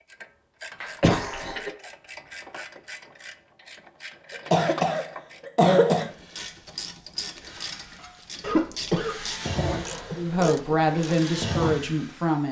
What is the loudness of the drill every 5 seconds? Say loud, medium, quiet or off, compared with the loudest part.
off, loud, loud.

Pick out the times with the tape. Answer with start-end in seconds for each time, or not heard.
not heard.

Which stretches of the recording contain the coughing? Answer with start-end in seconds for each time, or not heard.
0.8-1.7, 4.3-6.1, 8.4-10.6.